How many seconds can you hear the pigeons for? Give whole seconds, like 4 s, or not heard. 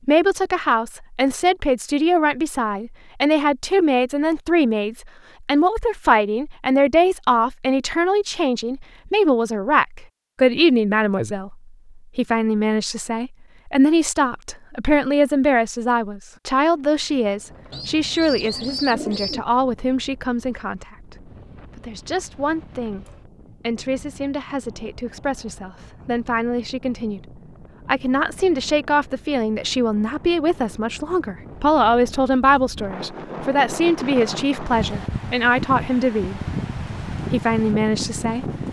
2 s.